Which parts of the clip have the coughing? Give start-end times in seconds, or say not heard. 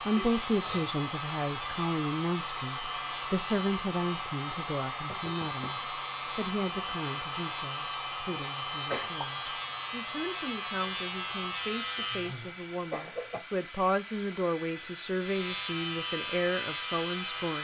0.1-0.8, 8.8-9.3, 11.9-13.4.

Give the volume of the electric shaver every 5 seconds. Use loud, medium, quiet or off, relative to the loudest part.
medium, loud, loud, loud.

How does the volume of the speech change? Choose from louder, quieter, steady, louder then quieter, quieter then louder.
quieter then louder.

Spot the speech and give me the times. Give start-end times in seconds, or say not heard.
0.1-17.5.